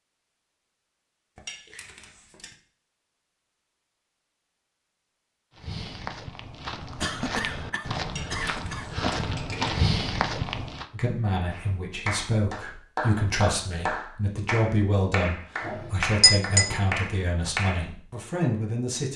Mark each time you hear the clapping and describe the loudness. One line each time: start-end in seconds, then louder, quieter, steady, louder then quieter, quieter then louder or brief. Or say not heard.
11.5-17.9 steady.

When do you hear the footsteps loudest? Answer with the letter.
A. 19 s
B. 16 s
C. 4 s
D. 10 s
D.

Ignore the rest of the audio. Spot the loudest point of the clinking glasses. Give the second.
16 s.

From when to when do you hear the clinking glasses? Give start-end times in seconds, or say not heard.
1.4-2.5, 8.1-9.8, 15.7-16.7.